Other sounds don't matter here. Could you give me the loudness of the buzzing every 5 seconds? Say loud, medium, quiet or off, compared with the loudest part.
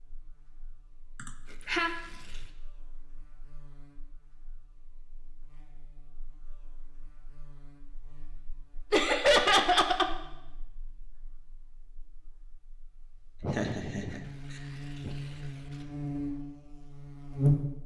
quiet, quiet, quiet, loud.